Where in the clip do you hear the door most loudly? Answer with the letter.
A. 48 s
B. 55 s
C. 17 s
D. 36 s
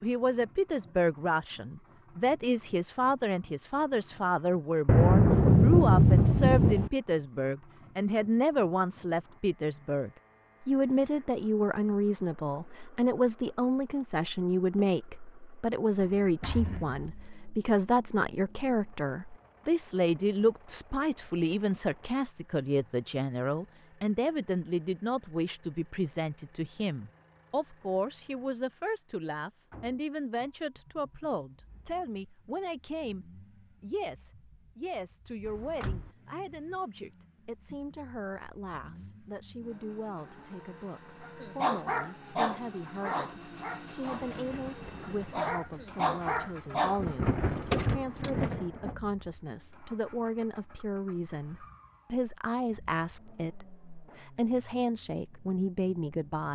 A.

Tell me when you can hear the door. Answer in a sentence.
The door can be heard from 16.0 to 17.0 s, from 35.5 to 36.1 s and from 47.5 to 48.4 s.